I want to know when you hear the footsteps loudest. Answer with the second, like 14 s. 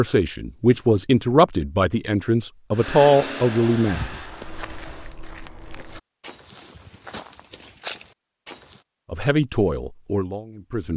8 s.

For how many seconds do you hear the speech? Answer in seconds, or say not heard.
6 s.